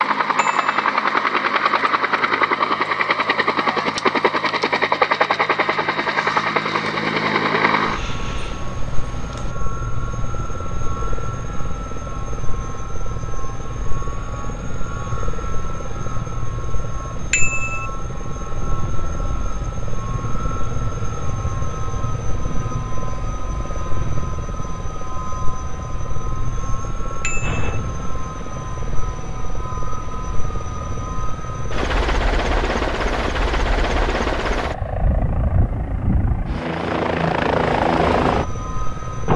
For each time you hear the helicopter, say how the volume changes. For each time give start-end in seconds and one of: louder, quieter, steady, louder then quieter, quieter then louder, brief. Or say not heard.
0.0-39.3 quieter then louder.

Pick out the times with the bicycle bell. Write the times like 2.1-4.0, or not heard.
0.3-0.8, 17.3-17.9, 27.2-27.8.